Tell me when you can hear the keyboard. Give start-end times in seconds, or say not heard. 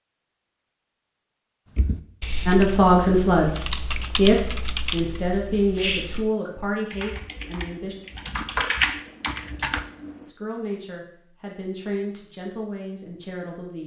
1.8-10.2.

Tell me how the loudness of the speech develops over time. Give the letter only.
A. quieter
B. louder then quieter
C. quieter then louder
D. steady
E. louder
A.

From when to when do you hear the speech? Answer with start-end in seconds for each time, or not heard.
2.5-8.0, 10.2-13.8.